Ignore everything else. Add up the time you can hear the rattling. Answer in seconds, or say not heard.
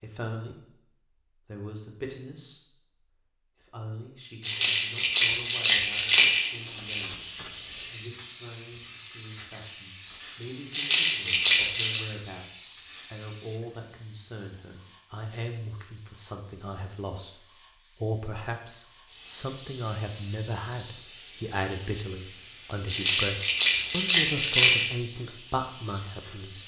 6 s.